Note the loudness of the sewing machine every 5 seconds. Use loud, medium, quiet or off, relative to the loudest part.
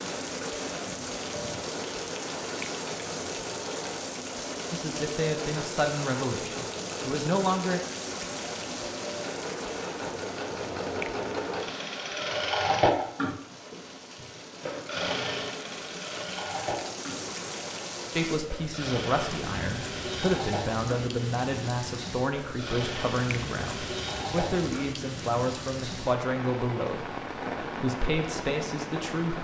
medium, medium, loud, medium, medium, off.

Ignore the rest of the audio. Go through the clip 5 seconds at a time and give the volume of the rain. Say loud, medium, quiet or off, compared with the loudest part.
loud, loud, medium, loud, loud, loud.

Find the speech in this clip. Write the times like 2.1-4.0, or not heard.
4.7-7.8, 18.1-29.3.